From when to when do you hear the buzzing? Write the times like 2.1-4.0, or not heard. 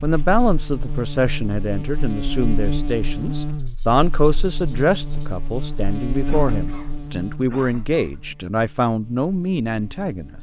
0.0-10.3.